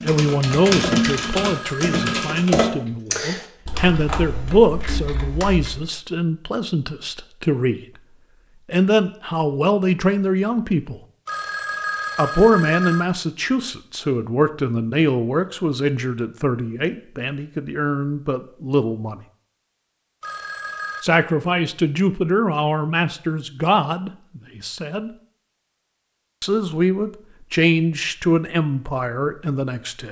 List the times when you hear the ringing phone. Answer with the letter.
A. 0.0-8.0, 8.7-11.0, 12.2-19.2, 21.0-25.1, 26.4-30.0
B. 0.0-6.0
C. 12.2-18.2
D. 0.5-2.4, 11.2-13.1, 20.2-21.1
D.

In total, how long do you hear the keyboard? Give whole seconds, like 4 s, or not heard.
6 s.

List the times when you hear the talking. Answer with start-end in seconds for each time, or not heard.
0.0-8.0, 8.7-11.0, 12.2-19.2, 21.0-25.1, 26.4-30.0.